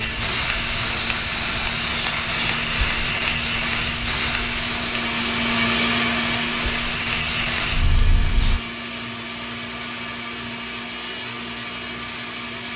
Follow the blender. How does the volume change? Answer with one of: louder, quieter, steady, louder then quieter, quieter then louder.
louder then quieter.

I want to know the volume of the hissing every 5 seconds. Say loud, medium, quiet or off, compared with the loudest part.
loud, loud, off.